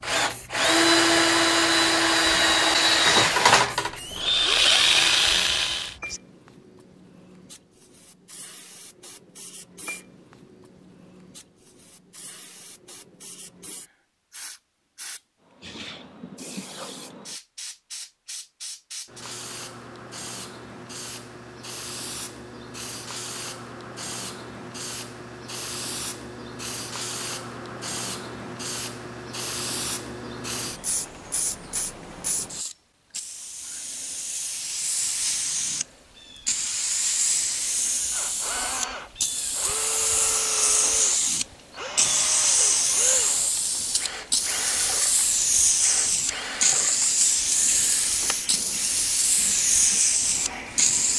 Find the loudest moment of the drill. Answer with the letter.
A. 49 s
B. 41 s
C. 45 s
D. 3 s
D.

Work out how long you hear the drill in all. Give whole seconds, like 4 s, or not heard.
19 s.